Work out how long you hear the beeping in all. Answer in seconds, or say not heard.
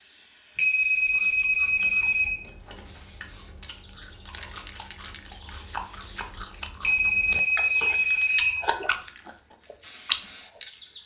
4 s.